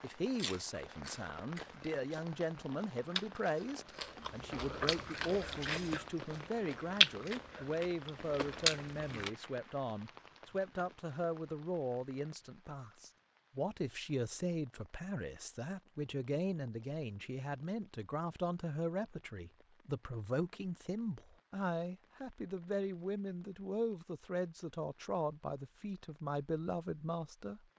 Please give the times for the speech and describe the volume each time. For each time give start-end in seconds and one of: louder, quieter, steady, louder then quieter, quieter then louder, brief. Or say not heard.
0.0-27.6 steady.